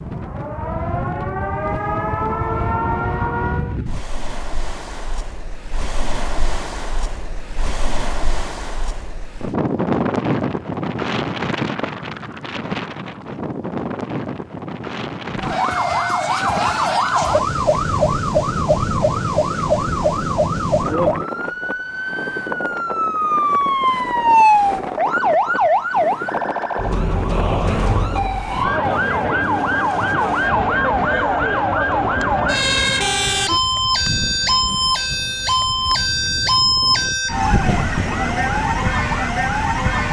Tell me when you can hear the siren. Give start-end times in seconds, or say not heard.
0.1-3.8, 15.3-40.0.